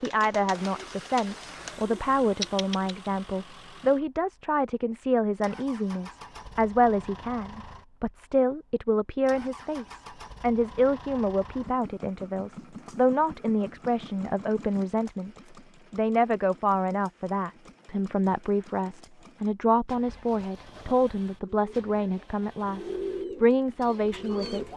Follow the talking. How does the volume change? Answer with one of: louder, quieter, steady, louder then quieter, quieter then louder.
steady.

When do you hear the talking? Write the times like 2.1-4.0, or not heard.
0.0-15.3, 15.9-24.6.